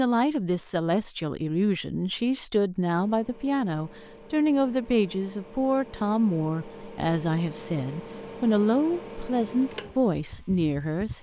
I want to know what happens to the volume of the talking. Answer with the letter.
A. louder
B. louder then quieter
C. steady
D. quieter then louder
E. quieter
C.